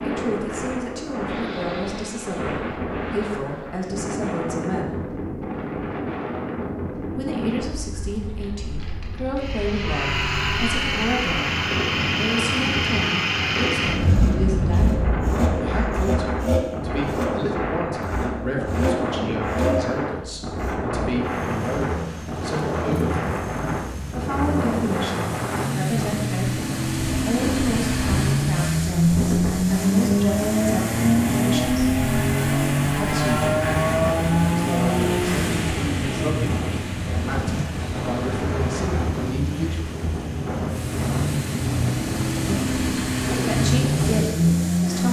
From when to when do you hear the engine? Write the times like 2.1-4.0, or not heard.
9.4-45.0.